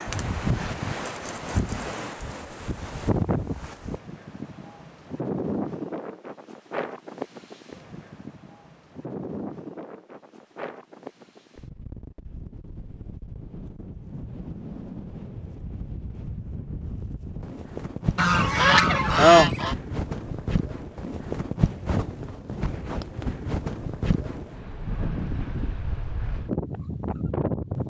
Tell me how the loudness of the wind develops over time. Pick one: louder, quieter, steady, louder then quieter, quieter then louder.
quieter then louder.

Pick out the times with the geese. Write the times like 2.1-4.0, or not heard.
18.1-19.8.